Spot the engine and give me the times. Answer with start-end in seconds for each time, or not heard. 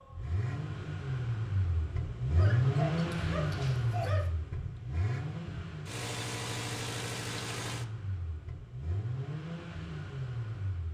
0.0-10.9.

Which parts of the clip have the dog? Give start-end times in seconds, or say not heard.
2.4-4.3.